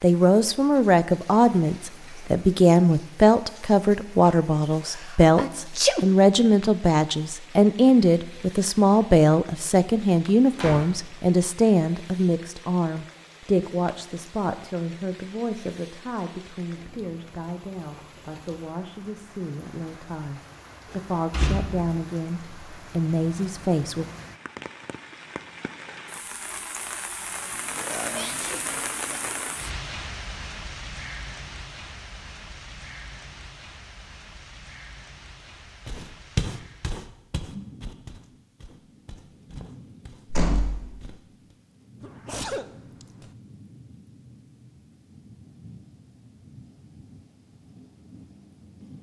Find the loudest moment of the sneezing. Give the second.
6 s.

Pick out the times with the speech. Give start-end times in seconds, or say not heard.
0.0-24.1.